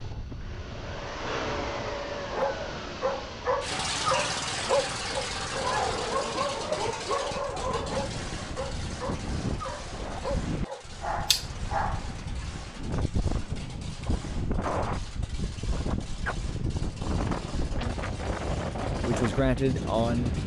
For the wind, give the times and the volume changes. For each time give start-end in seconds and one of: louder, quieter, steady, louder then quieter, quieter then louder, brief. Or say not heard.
0.0-20.4 louder.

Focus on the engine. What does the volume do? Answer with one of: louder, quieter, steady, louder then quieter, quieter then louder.
quieter.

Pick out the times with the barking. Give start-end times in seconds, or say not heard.
2.2-12.2.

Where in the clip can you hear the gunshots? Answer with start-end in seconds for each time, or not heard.
not heard.